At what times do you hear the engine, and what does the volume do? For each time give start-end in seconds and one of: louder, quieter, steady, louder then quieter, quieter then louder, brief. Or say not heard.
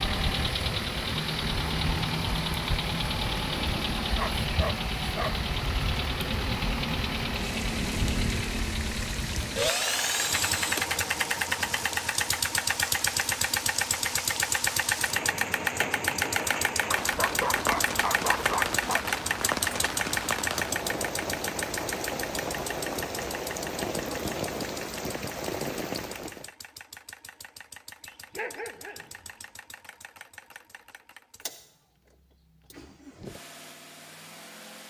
0.0-34.8 quieter.